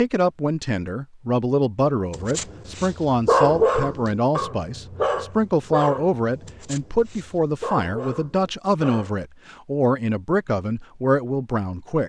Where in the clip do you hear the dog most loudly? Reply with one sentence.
The volume of the dog peaks at 3 seconds.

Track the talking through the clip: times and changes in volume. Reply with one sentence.
The talking can be heard from 0.0 to 12.0 s, at a steady volume.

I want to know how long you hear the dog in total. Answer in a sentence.
The dog can be heard for 7 seconds in total.